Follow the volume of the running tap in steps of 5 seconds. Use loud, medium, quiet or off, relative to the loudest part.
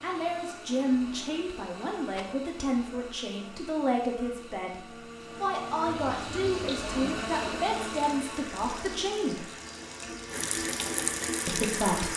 off, medium, loud.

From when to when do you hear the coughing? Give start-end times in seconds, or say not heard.
not heard.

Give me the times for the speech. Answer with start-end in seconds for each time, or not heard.
0.0-4.8, 5.4-9.4, 11.4-12.1.